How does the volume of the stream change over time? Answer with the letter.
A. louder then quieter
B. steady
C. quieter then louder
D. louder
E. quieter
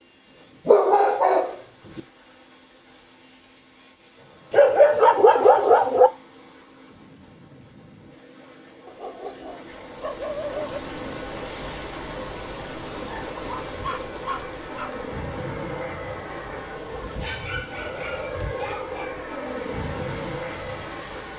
E.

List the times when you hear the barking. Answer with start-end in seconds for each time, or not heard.
0.7-2.0, 4.5-6.1, 8.8-10.8, 12.9-15.1, 17.0-19.1.